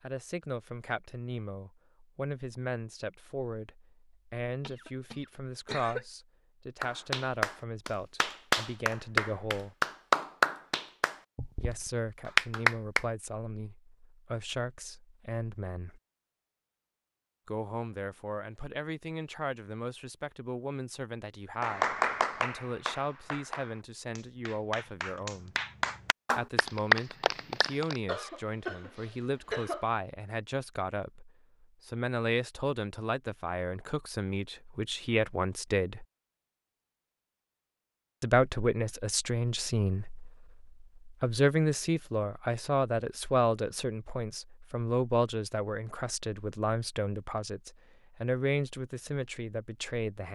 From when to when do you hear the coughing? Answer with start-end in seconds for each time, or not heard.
4.6-6.0, 28.1-29.9.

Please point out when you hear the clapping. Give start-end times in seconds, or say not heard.
6.8-13.1, 21.6-28.0.